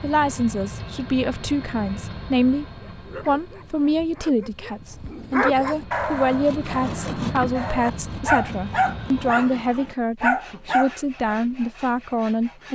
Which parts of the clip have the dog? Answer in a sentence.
You can hear the dog from 2.6 to 11.3 s.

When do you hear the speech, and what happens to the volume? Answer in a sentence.
You can hear the speech briefly from 0.0 to 2.6 s; and from 3.2 to 12.6 s, at a steady volume.